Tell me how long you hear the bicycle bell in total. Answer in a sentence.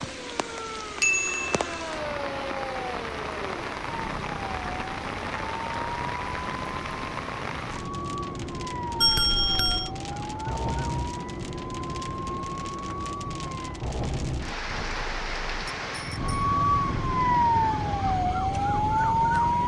You can hear the bicycle bell for 3 seconds altogether.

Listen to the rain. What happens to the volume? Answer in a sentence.
The volume of the rain stays about the same.